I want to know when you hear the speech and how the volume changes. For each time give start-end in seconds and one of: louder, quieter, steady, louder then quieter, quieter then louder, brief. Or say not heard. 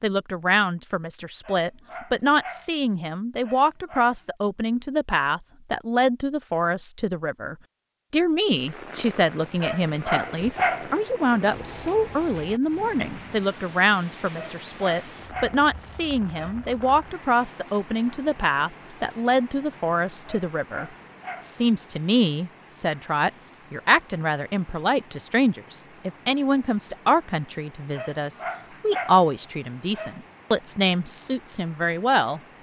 0.0-32.5 steady.